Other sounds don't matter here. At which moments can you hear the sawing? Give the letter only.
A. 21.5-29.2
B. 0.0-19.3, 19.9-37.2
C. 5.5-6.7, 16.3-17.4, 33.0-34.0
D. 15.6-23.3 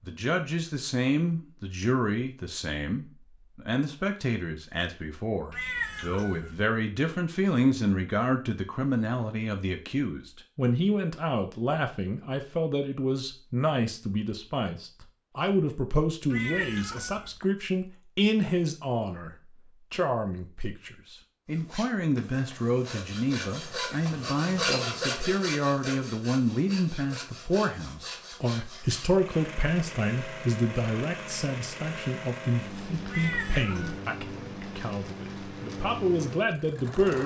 A.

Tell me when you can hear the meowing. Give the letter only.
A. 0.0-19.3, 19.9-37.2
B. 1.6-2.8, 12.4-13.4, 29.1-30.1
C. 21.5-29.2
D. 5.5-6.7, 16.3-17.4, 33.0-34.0
D.